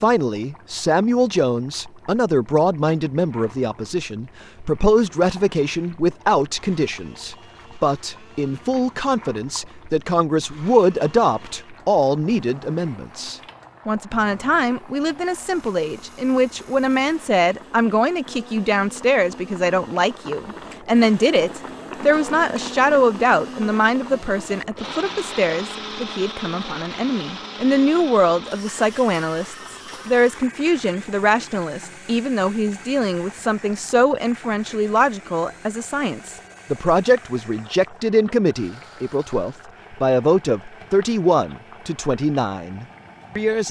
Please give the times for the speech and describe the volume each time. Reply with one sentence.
You can hear the speech from 0.0 to 43.6 s, at a steady volume.